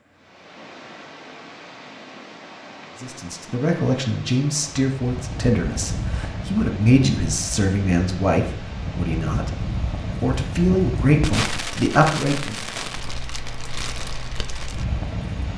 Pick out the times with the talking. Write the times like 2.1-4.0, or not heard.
3.0-12.7.